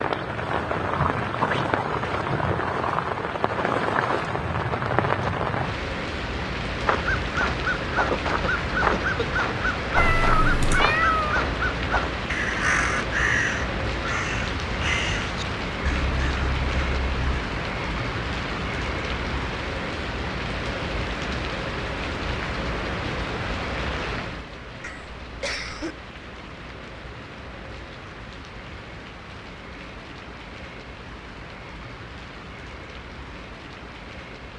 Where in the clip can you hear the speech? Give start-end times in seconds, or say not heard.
not heard.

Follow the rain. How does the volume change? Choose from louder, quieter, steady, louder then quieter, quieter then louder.
quieter.